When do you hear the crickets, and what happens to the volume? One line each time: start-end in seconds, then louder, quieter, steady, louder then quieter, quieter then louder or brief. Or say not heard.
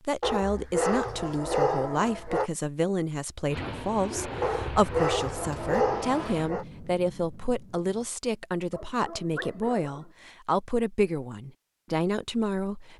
not heard.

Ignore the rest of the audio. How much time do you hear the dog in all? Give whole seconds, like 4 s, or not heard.
6 s.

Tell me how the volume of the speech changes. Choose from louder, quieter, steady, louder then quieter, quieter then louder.
steady.